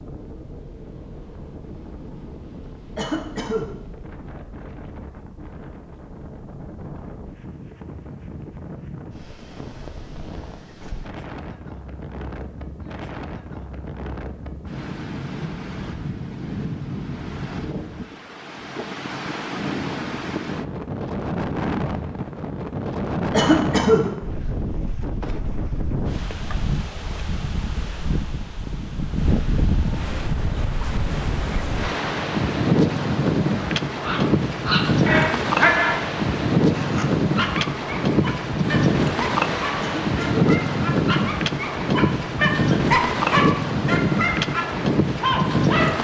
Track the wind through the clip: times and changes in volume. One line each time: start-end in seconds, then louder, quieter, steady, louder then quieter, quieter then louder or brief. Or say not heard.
0.0-45.9 louder.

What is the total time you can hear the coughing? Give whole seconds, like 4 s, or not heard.
2 s.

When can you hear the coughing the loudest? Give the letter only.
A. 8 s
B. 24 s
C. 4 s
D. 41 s
B.